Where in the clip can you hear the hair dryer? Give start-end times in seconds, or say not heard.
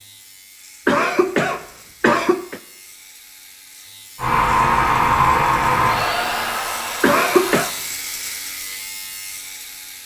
4.2-7.7.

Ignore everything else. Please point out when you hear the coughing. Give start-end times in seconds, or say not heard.
0.8-2.6, 7.0-7.7.